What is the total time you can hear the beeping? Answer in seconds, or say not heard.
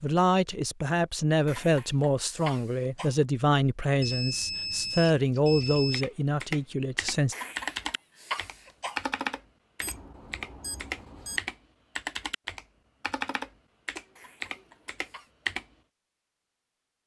4 s.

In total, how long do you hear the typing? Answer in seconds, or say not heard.
10 s.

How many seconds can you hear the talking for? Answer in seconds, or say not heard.
7 s.